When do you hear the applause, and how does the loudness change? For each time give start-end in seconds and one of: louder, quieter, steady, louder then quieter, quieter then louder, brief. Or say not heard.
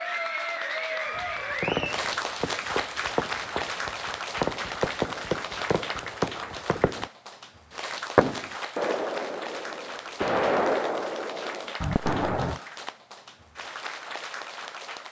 0.0-15.0 quieter.